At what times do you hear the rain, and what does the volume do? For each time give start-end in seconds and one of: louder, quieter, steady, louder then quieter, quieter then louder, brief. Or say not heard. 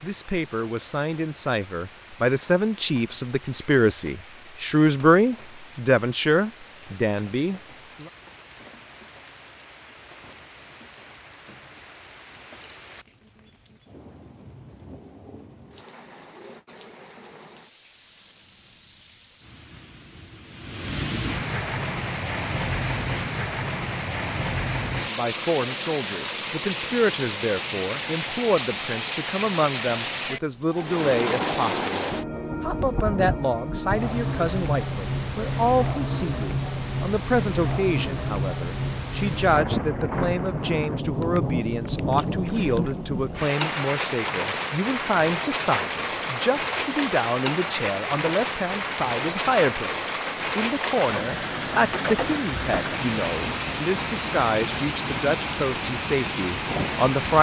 0.0-57.3 louder.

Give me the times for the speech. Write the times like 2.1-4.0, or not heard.
0.0-8.1, 25.0-57.3.